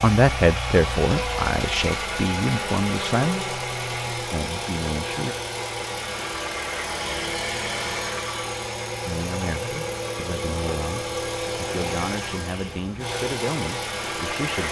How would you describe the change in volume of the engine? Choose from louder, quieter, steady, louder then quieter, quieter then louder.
steady.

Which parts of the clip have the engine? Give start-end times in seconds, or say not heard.
0.0-14.6.